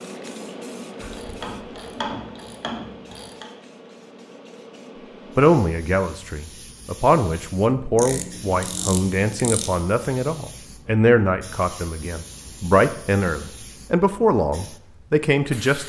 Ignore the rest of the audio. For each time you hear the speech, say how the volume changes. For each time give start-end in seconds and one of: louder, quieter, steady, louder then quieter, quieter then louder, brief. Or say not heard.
5.3-15.8 steady.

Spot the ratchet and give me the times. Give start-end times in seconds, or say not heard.
0.9-3.5, 8.0-9.7.